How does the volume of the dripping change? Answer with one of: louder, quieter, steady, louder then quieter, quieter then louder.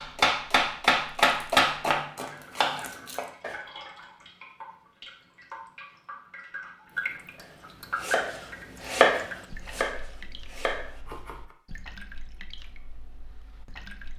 louder then quieter.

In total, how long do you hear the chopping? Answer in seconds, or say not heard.
8 s.